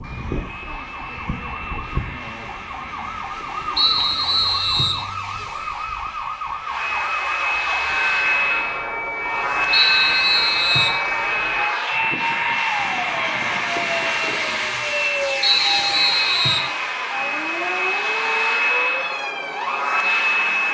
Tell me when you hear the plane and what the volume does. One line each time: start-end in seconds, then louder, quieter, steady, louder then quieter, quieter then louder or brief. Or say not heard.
0.0-20.7 louder.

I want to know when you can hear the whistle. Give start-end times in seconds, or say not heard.
3.8-5.0, 9.7-11.0, 15.4-16.7.